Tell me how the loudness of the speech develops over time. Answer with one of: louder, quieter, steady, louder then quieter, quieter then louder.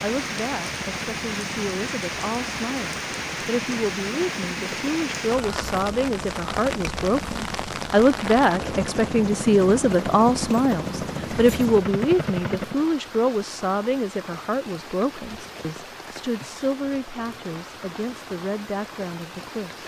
louder then quieter.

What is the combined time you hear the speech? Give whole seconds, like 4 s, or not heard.
20 s.